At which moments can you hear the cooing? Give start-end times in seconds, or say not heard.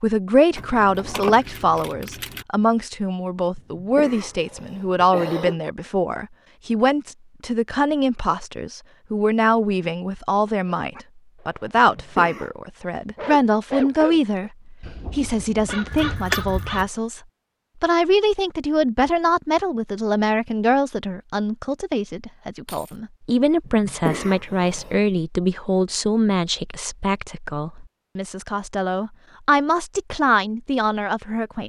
not heard.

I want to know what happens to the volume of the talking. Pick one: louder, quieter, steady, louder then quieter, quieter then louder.
steady.